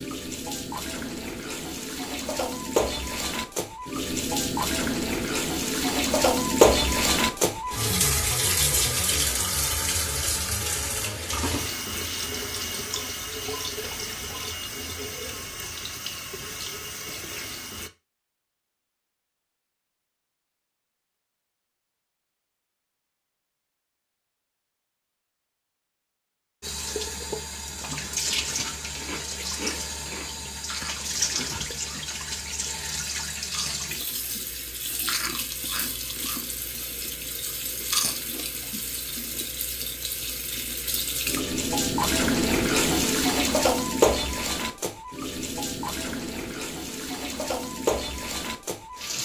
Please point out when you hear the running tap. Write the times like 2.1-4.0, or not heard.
0.0-17.9, 26.6-49.2.